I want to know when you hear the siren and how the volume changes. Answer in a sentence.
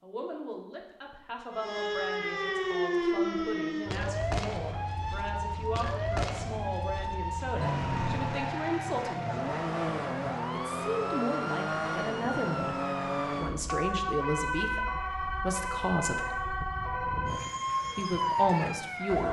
The siren can be heard from 1.5 to 19.2 s, at a steady volume.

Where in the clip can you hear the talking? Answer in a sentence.
The talking can be heard from 0.0 to 9.4 s, from 10.5 to 16.3 s and from 17.9 to 19.2 s.